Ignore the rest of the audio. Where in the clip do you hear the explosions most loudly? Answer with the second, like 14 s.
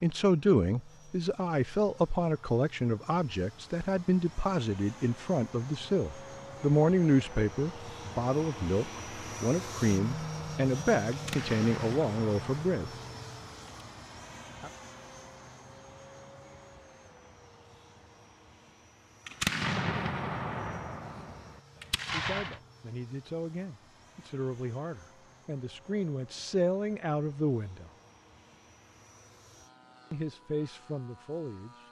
20 s.